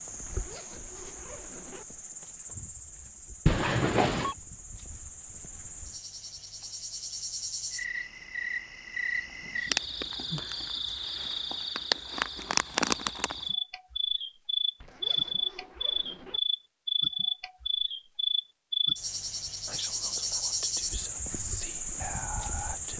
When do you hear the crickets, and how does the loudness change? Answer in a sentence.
The crickets can be heard from 0.0 to 22.9 s, getting louder.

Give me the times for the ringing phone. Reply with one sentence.
The ringing phone can be heard from 3.5 to 4.3 s.